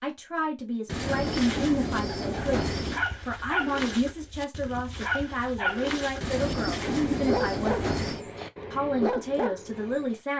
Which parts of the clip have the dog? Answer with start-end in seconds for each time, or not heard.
1.1-10.2.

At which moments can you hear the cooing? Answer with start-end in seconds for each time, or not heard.
0.8-3.0, 6.2-8.2.